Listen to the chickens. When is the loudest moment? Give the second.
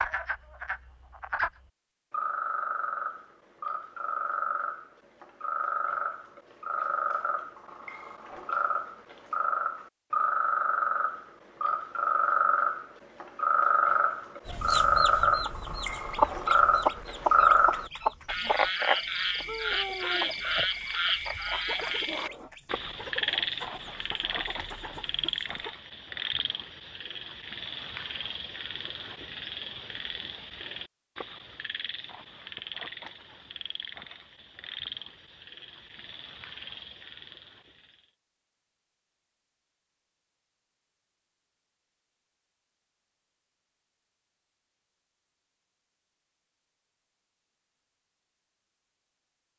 16 s.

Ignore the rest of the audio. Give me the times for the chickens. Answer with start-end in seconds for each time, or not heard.
14.4-25.8.